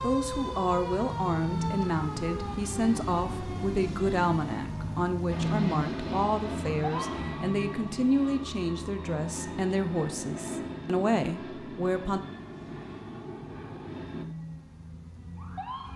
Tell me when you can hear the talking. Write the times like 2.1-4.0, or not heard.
0.0-12.2.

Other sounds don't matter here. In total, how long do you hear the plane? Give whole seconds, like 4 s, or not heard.
9 s.